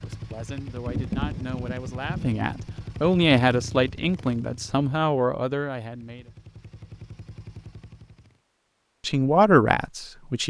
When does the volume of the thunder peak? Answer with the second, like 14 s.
1 s.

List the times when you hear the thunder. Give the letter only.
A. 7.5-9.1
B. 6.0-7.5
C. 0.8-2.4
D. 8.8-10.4
C.